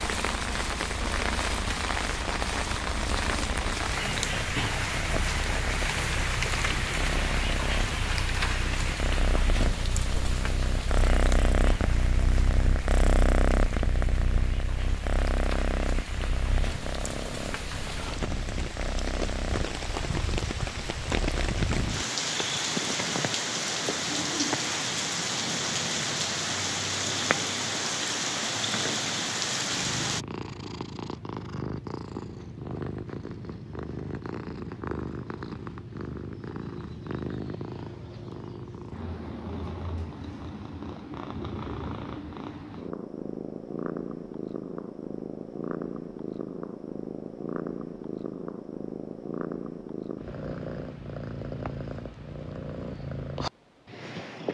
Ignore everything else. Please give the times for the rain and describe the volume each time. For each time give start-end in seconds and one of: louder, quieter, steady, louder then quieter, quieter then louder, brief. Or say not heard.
0.0-30.2 quieter then louder.